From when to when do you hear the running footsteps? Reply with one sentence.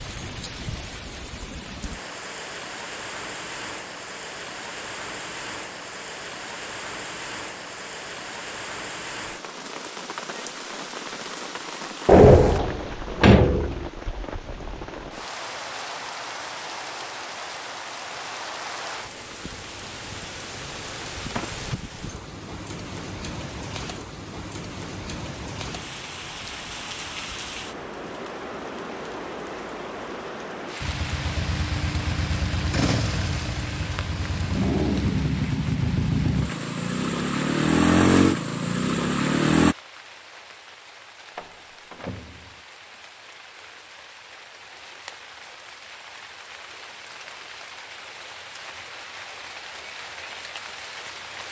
The running footsteps can't be heard in this clip.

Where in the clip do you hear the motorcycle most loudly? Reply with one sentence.
The loudest moment of the motorcycle is at 38 seconds.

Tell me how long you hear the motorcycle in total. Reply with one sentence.
You can hear the motorcycle for 9 seconds altogether.